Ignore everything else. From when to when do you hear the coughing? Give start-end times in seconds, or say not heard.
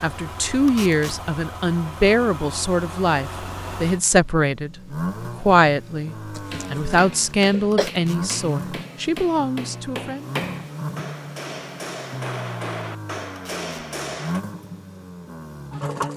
6.3-7.9.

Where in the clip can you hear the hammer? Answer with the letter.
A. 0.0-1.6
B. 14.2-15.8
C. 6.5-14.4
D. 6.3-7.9
C.